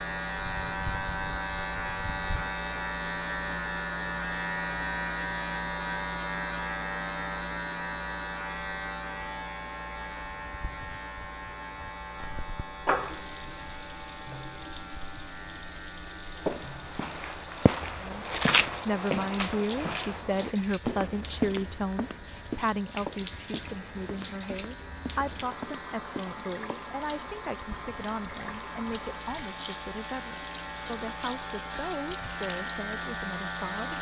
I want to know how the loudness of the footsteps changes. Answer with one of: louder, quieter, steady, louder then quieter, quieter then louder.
quieter.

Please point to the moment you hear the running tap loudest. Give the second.
13 s.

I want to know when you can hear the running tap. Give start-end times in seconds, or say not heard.
12.2-33.9.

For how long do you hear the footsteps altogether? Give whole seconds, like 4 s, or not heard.
10 s.